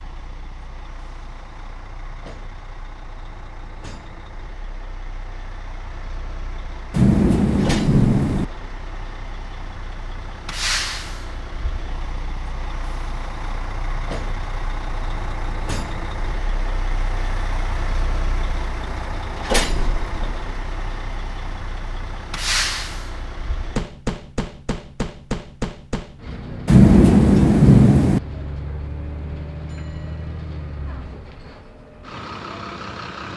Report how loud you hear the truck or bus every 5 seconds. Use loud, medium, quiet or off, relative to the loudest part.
quiet, medium, loud, loud, loud, loud, medium.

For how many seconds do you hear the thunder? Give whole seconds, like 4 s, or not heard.
3 s.